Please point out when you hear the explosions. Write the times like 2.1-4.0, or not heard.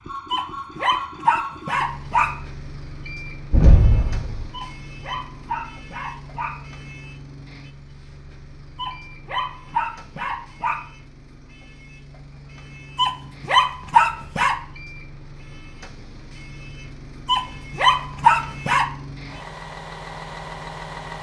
3.5-4.5.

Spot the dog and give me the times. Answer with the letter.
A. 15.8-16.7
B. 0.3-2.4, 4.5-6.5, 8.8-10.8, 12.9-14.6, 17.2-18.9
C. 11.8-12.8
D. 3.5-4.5
B.